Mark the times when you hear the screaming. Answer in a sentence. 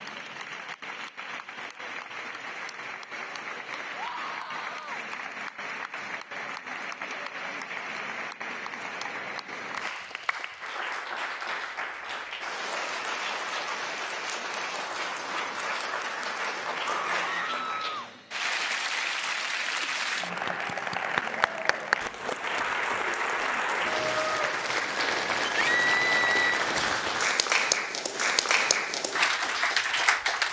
The screaming can be heard from 3.9 to 5.0 s, from 16.9 to 17.9 s and from 25.6 to 26.5 s.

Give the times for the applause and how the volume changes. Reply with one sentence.
The applause can be heard from 0.0 to 30.4 s, getting louder.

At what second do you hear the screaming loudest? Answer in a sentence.
The loudest moment of the screaming is at 26 seconds.